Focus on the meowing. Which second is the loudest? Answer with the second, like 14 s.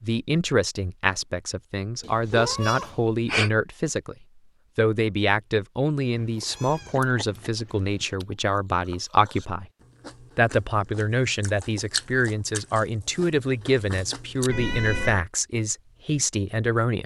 3 s.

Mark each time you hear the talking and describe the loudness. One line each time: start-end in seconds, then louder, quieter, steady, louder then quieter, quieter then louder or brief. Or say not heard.
0.0-4.2 steady
4.8-9.7 quieter then louder
10.3-17.0 steady.